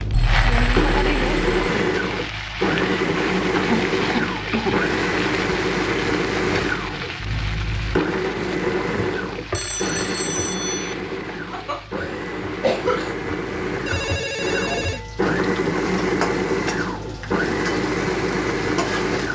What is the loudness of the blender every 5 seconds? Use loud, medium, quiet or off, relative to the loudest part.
loud, loud, medium, loud.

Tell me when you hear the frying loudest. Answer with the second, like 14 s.
1 s.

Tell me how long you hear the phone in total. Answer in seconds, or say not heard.
4 s.